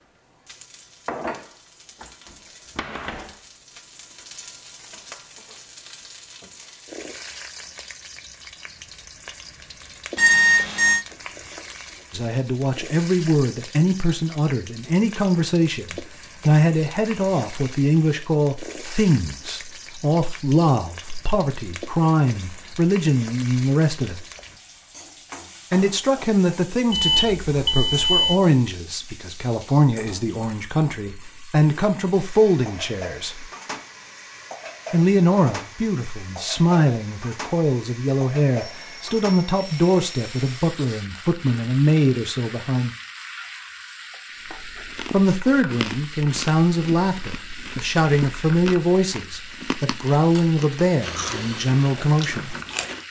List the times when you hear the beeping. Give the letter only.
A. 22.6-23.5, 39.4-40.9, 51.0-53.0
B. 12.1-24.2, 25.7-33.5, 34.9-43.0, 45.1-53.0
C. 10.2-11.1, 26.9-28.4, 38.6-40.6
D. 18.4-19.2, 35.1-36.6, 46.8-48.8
C.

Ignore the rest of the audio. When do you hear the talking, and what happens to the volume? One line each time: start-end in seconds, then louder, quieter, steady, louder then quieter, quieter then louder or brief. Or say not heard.
12.1-24.2 steady
25.7-33.5 steady
34.9-43.0 steady
45.1-53.0 steady.